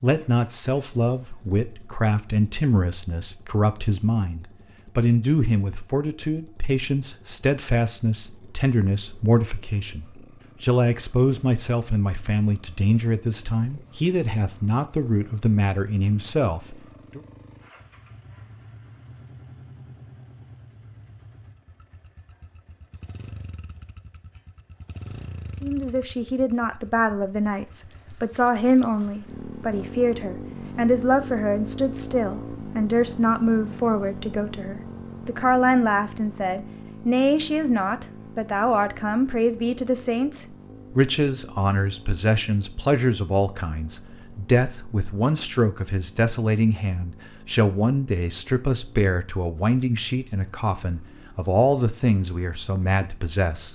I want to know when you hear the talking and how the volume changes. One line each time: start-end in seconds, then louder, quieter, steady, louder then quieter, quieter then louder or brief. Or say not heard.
0.0-17.2 steady
25.6-53.7 steady.